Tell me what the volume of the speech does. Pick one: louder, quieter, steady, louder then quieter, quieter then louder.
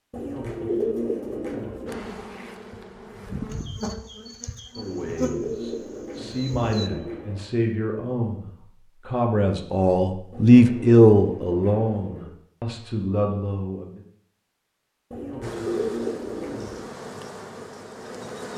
louder then quieter.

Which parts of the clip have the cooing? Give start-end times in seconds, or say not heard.
0.1-2.0, 4.8-7.4, 10.3-12.3, 15.1-16.9.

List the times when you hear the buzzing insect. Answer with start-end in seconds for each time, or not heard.
1.9-6.9, 15.4-18.5.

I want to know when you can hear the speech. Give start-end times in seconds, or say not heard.
4.8-14.0.